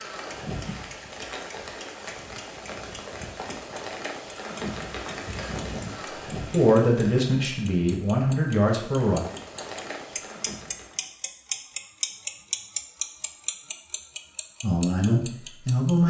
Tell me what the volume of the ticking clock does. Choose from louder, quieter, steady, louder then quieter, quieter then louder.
louder then quieter.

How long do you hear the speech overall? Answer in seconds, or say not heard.
4 s.